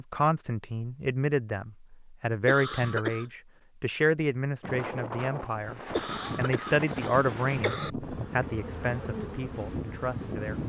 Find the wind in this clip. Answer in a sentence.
The wind can be heard from 4.6 to 10.6 s.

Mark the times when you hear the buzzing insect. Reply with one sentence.
The buzzing insect can be heard from 8.0 to 10.6 s.